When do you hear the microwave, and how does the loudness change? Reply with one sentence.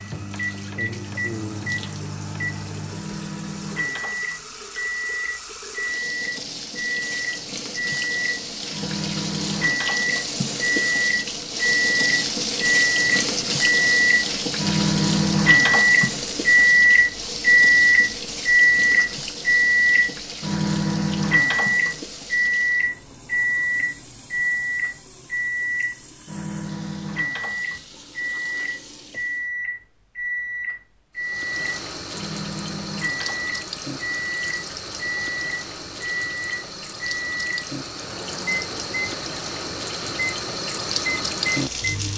The microwave can be heard from 0.0 to 42.1 s, getting louder then quieter.